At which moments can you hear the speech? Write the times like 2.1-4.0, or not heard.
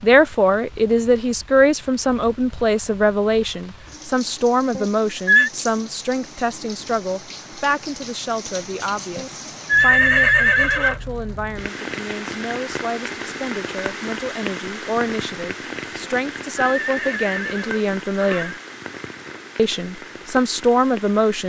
0.0-18.6, 19.6-21.4.